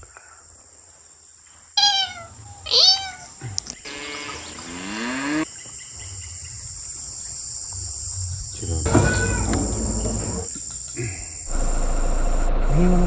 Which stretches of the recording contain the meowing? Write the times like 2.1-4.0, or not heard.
1.8-3.8, 8.8-10.4.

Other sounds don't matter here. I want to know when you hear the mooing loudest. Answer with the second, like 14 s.
5 s.